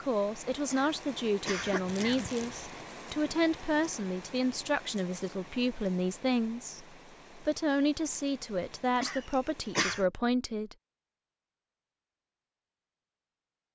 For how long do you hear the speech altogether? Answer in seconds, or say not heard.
11 s.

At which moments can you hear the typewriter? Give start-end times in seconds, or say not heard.
not heard.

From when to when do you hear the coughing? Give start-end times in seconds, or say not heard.
0.7-2.6, 9.0-10.1.